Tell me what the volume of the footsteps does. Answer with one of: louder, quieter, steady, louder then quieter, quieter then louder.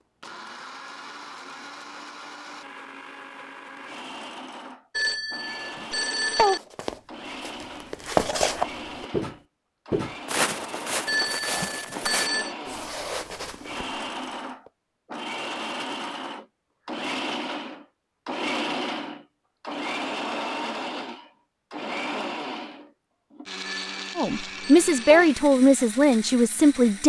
quieter.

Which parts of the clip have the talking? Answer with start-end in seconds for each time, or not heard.
24.1-27.0.